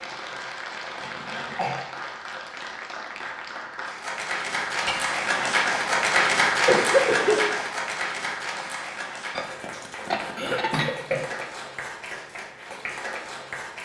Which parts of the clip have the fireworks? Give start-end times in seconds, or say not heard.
not heard.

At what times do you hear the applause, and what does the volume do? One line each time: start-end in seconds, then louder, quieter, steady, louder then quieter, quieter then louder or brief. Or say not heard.
0.0-13.8 louder then quieter.